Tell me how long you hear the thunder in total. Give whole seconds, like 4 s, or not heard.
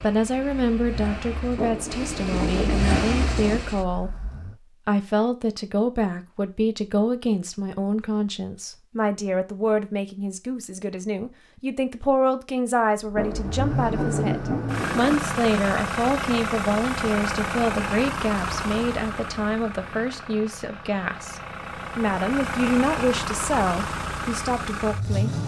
4 s.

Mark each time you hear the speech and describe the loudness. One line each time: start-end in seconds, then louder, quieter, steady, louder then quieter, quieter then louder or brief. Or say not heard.
0.0-25.4 steady.